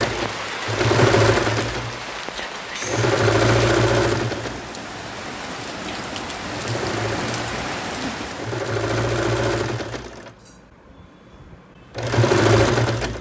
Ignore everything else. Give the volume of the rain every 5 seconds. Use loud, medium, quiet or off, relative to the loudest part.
loud, loud, off.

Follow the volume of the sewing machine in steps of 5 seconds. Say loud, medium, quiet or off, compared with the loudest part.
loud, medium, loud.